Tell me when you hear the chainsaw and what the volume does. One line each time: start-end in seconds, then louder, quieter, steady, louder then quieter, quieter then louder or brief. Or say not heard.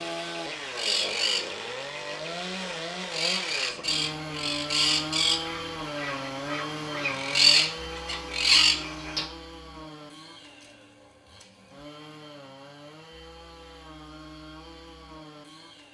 0.0-15.8 quieter.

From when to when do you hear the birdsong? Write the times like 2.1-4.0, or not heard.
0.0-9.2.